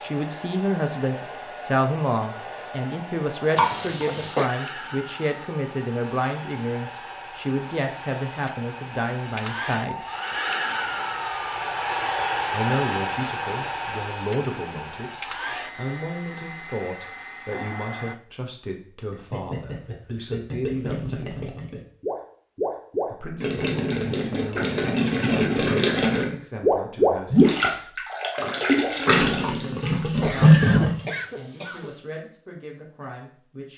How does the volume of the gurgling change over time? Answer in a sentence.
The loudness of the gurgling goes up.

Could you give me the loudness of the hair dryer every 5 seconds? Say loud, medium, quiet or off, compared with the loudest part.
medium, medium, loud, medium, off, off, off.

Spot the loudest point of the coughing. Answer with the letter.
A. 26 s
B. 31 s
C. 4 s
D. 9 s
C.